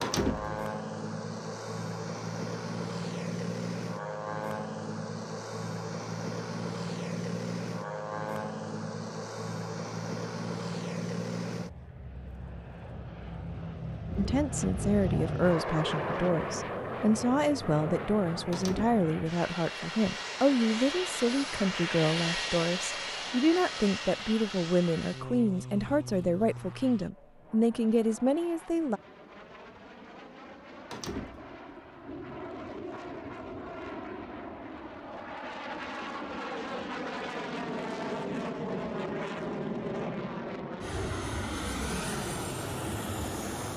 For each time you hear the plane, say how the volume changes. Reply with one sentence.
You can hear the plane from 0.0 to 43.7 s, getting quieter then louder.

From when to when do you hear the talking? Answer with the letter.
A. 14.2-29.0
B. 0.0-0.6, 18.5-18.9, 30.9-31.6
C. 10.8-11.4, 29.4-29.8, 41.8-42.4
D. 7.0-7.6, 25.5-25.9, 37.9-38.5
A.